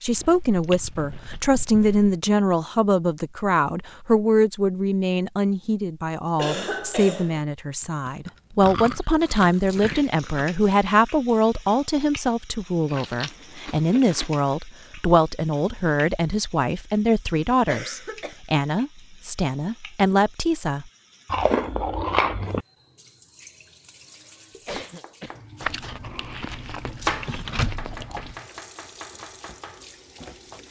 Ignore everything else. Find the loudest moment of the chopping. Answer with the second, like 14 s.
27 s.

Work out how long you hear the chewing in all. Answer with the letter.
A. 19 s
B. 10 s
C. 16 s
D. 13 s
B.